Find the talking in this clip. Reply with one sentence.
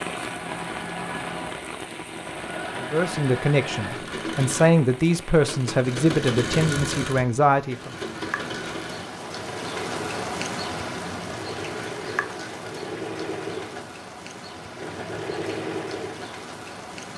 The talking can be heard from 2.8 to 7.9 s.